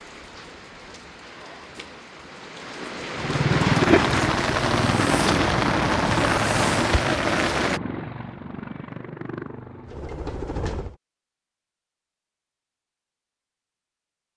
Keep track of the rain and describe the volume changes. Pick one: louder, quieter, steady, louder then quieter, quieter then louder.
louder.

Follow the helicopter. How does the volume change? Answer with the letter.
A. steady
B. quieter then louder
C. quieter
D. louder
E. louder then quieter
C.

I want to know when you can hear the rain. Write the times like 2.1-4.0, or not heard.
0.0-7.8.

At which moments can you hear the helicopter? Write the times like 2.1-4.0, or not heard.
3.1-10.9.